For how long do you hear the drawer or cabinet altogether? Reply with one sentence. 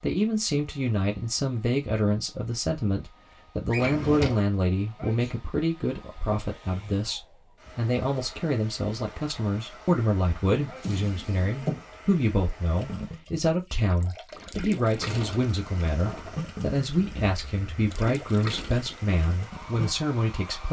You can hear the drawer or cabinet for 4 seconds altogether.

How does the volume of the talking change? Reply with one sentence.
The volume of the talking stays about the same.